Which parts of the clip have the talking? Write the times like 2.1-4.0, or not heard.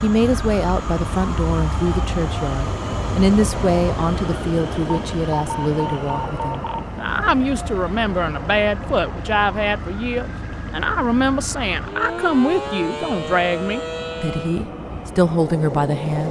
0.0-16.2.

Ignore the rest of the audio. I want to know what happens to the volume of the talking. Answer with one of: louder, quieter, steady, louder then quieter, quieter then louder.
steady.